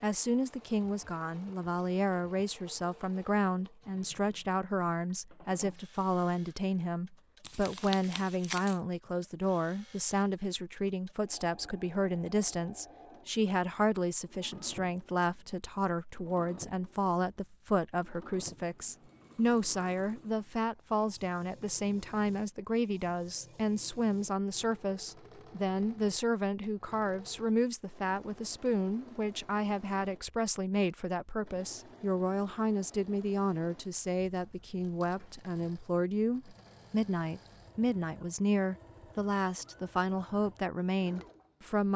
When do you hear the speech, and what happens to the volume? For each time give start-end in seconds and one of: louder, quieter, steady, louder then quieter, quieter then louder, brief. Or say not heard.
0.0-41.9 steady.